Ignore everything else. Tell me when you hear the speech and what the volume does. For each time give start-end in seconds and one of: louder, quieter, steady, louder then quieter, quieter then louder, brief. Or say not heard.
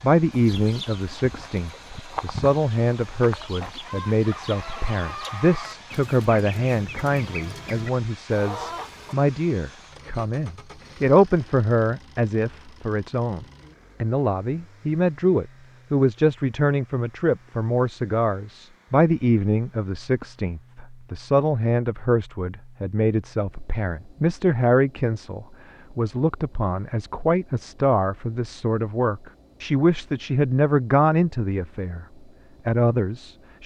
0.0-32.0 steady
32.6-33.6 brief.